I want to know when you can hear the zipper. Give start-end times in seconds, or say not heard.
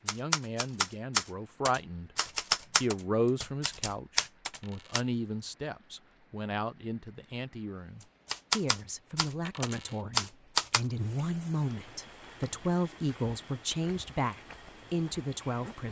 not heard.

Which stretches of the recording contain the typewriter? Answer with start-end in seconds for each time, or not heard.
0.1-5.0, 8.2-10.8.